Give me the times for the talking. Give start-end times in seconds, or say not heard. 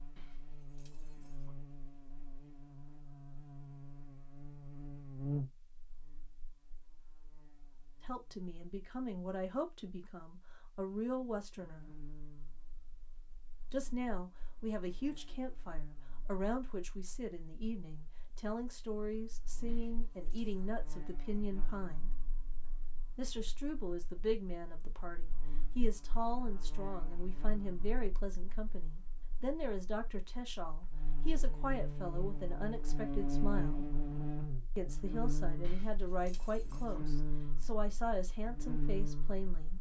8.0-11.9, 13.7-22.1, 23.1-33.9, 34.8-39.7.